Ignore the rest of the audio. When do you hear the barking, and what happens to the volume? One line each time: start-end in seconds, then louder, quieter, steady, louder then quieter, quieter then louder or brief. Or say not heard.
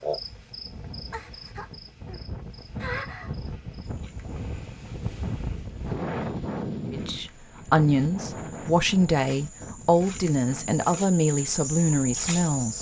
not heard.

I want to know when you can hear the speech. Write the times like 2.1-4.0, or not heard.
6.9-12.7.